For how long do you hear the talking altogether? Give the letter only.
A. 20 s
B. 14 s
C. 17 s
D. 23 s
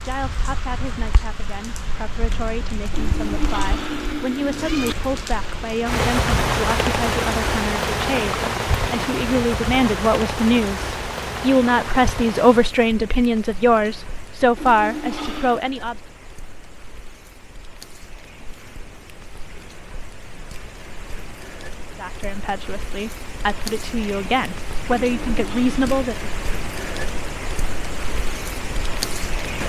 A.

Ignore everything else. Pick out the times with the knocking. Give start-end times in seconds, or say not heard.
not heard.